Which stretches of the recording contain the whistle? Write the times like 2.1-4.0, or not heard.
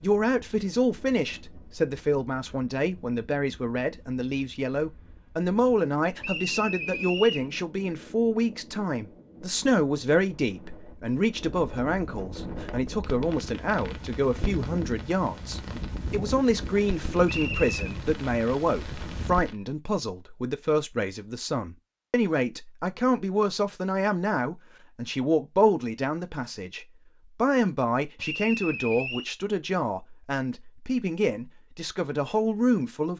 6.2-7.5, 17.2-17.8, 28.1-29.3.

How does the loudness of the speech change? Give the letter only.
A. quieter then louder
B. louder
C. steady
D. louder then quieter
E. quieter
C.